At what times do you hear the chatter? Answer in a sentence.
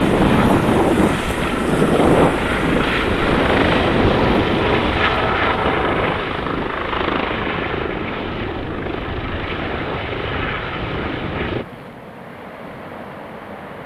You can't hear the chatter here.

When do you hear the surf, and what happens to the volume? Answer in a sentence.
You can hear the surf from 0.0 to 13.8 s, getting quieter.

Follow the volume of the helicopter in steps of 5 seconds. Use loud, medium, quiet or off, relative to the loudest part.
loud, loud, medium.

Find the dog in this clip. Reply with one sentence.
You can't hear the dog here.